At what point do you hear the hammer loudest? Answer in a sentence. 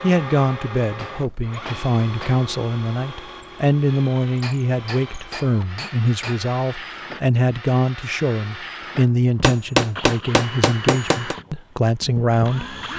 The loudest moment of the hammer is at 10 seconds.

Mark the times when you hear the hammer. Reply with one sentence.
You can hear the hammer from 0.9 to 2.5 s, from 4.4 to 6.4 s and from 9.4 to 11.3 s.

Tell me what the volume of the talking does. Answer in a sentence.
The loudness of the talking stays about the same.